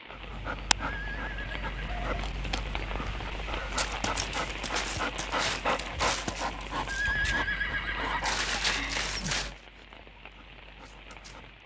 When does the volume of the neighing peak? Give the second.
7 s.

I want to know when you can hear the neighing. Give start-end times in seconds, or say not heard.
0.8-2.1, 6.8-8.4.